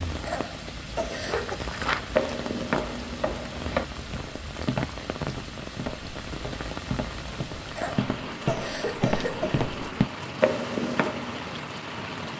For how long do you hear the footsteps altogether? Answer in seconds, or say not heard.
10 s.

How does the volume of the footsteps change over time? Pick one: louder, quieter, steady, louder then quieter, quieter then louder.
quieter then louder.